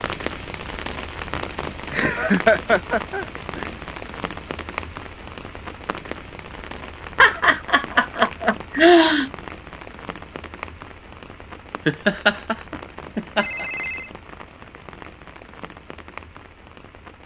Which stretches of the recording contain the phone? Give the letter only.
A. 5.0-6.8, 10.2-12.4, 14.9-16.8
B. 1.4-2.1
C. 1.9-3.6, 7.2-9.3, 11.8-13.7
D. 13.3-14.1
D.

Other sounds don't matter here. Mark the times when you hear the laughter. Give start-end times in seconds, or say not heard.
1.9-3.6, 7.2-9.3, 11.8-13.7.